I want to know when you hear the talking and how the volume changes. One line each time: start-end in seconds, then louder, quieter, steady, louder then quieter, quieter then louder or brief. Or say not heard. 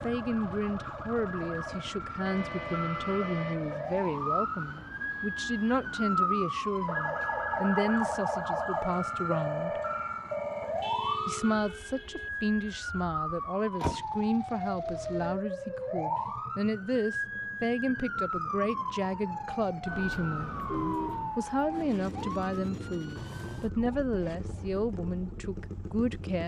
0.0-9.8 steady
11.2-26.4 steady.